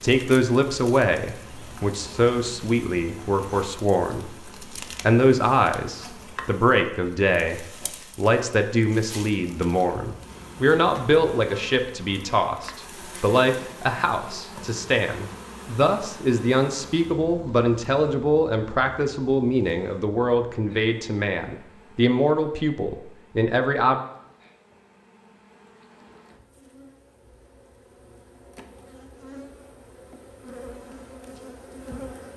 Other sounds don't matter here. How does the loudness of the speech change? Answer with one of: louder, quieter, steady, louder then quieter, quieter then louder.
steady.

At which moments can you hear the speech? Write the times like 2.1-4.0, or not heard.
0.0-4.3, 5.0-24.0.